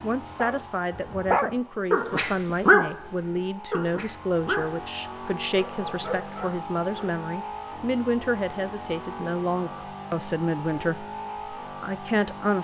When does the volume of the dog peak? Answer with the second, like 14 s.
3 s.